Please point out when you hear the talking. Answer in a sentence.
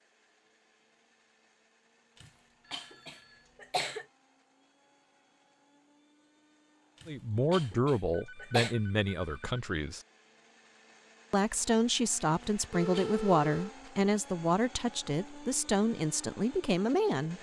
The talking can be heard from 7.0 to 10.0 s and from 11.3 to 17.3 s.